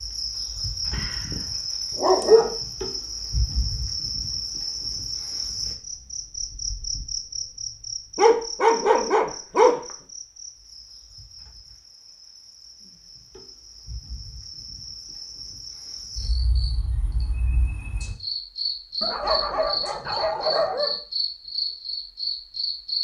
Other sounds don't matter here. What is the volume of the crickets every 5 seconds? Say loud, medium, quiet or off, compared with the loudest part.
loud, loud, quiet, loud, loud.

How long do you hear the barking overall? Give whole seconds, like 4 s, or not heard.
5 s.